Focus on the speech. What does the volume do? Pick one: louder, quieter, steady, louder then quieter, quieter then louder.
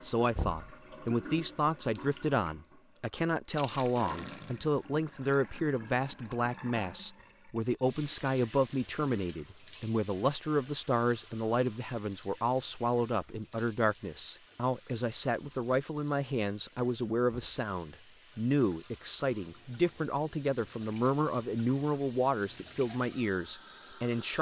steady.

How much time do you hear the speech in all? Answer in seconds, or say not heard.
24 s.